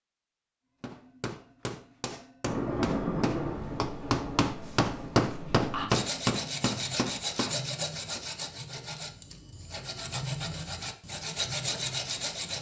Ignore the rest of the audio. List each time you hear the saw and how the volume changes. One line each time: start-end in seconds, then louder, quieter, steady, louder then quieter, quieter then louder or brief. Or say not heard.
5.9-12.5 quieter then louder.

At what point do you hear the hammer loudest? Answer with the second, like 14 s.
5 s.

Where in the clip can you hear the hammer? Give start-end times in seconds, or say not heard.
0.8-8.2.